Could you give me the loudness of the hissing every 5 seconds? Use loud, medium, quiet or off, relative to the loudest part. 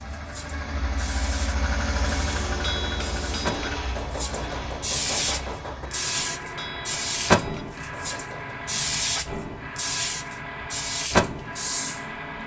medium, loud, loud.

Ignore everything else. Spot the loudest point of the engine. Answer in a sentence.
The loudest moment of the engine is at 2 seconds.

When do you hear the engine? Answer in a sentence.
The engine can be heard from 0.0 to 12.4 s.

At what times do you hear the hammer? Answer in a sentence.
The hammer can be heard from 2.5 to 8.6 s.